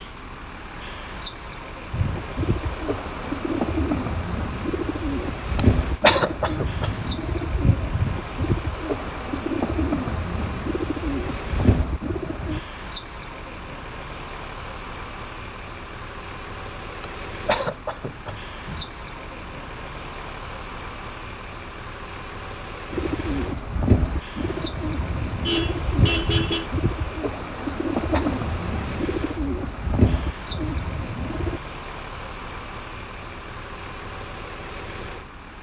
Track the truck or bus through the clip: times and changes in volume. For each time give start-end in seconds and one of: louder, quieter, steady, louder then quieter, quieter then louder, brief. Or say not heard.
0.0-35.5 steady.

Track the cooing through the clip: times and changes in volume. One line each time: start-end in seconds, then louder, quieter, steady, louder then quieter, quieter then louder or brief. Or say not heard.
1.9-12.6 steady
22.9-31.6 steady.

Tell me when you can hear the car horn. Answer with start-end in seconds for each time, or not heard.
25.2-26.7.